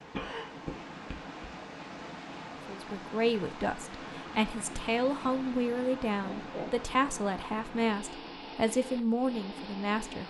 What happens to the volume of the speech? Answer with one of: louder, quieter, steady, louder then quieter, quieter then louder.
steady.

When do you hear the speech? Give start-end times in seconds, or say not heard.
2.6-10.2.